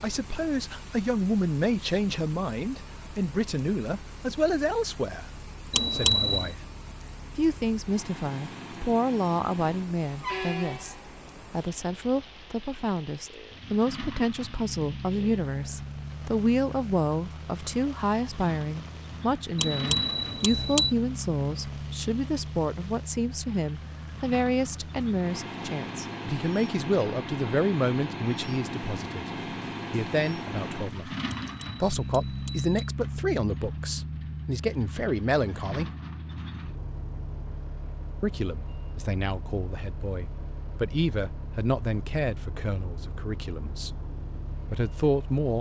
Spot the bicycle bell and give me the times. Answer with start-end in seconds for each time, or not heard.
5.7-6.5, 19.6-20.9, 31.4-32.8.